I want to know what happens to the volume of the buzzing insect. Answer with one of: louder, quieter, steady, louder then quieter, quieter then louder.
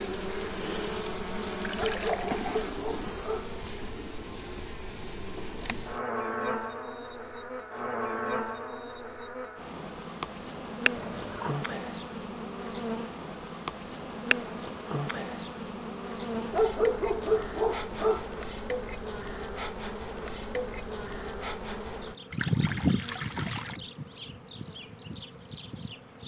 steady.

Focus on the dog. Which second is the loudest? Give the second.
17 s.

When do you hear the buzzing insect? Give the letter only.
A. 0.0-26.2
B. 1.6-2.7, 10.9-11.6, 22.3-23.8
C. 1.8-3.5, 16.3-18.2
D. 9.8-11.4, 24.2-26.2
A.